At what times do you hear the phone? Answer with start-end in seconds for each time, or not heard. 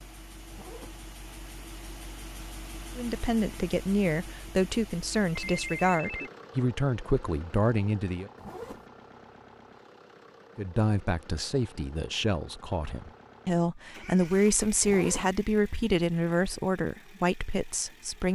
5.3-6.3.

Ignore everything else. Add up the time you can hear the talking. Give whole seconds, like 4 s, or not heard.
13 s.